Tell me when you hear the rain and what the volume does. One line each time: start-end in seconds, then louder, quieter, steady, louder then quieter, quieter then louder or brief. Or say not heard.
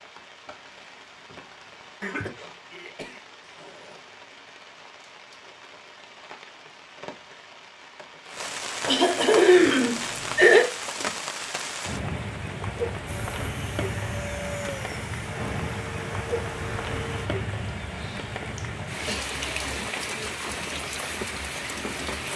0.0-22.3 louder.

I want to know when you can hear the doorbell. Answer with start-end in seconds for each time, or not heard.
not heard.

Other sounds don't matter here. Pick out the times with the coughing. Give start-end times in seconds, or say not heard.
2.0-4.0, 8.8-10.7, 17.9-19.2.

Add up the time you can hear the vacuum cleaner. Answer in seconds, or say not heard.
4 s.